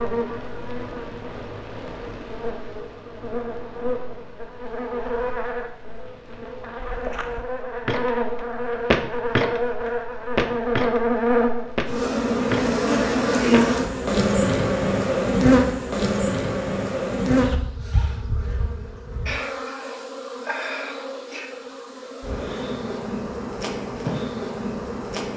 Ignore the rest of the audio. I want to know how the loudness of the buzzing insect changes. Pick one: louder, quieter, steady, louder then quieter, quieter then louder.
louder then quieter.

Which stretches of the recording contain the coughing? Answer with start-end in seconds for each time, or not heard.
not heard.